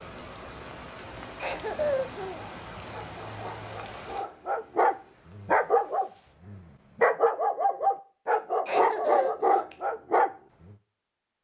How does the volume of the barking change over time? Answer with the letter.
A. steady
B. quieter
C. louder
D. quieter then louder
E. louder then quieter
C.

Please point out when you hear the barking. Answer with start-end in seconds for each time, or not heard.
2.4-10.8.